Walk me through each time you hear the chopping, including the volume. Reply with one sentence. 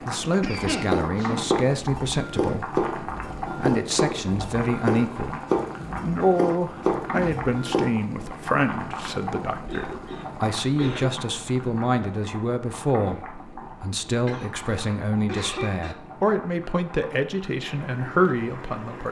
The chopping can be heard from 0.7 to 7.9 s, at a steady volume.